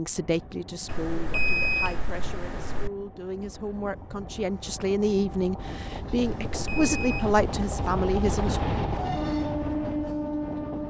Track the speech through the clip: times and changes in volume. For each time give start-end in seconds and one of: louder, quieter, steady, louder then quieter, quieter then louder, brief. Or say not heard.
0.0-8.6 louder.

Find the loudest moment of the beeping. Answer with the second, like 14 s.
2 s.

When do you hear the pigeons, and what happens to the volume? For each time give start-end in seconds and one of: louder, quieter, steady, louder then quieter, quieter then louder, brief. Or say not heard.
not heard.